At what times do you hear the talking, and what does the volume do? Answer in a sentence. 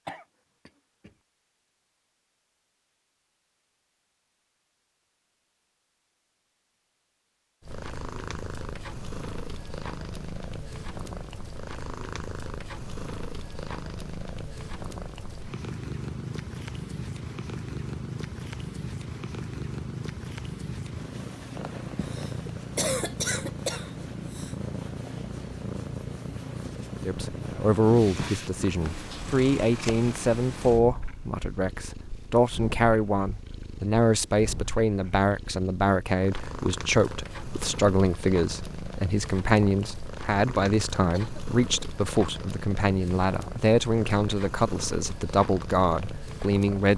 You can hear the talking from 27.1 to 46.9 s, at a steady volume.